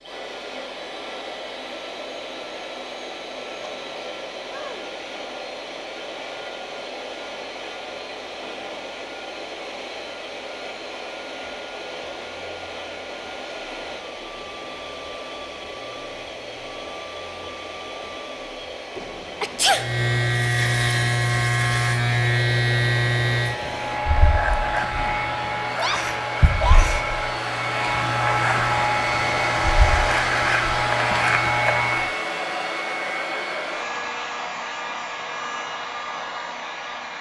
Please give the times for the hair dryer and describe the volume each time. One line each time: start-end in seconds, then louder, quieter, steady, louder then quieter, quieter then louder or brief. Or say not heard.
0.0-37.1 louder.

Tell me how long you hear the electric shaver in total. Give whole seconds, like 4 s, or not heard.
12 s.